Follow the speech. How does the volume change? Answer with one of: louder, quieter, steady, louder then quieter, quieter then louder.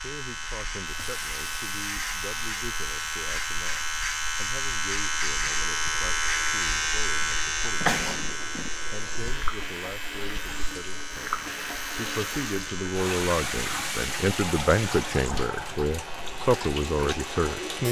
louder.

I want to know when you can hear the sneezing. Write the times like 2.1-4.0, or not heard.
7.2-8.7.